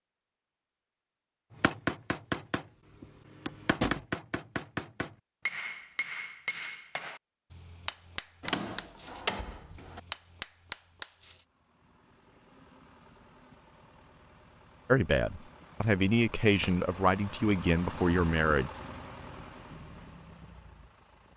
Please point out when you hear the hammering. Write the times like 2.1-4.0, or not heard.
1.6-11.4.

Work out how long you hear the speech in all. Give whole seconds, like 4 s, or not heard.
4 s.